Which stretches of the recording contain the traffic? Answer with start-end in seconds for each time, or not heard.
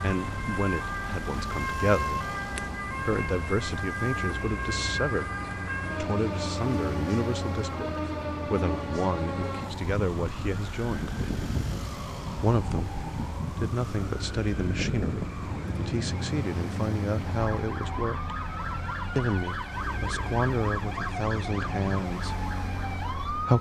0.0-23.5.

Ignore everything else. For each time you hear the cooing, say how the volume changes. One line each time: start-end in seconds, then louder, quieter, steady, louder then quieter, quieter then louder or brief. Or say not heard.
not heard.